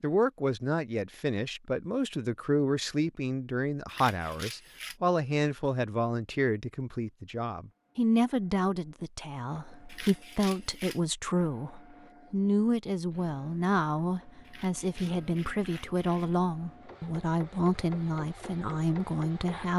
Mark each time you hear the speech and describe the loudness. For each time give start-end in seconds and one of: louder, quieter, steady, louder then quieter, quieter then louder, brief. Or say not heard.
0.0-19.7 steady.